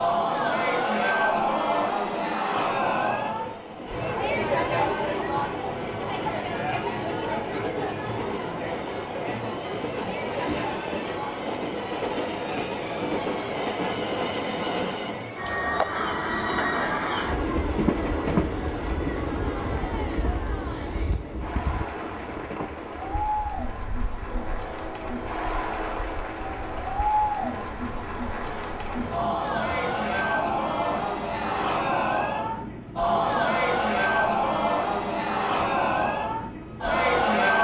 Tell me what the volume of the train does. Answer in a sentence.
The volume of the train goes up, then down.